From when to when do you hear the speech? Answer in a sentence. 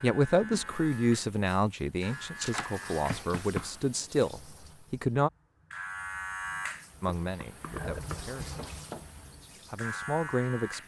You can hear the speech from 0.0 to 5.3 s, from 7.0 to 8.6 s and from 9.7 to 10.8 s.